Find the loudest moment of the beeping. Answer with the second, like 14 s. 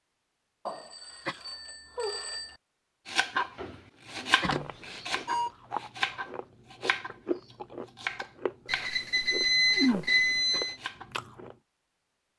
10 s.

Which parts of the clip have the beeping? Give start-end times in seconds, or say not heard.
0.7-2.6, 4.4-5.5, 8.7-10.8.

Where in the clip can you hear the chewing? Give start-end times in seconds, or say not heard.
4.5-11.6.